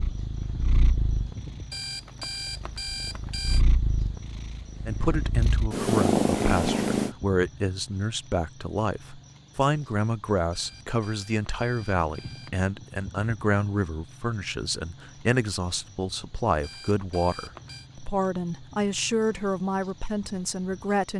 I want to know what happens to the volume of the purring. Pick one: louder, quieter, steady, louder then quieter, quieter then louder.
quieter then louder.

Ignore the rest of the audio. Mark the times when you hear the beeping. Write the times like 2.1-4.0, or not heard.
1.7-3.6, 10.5-12.6, 16.6-17.9.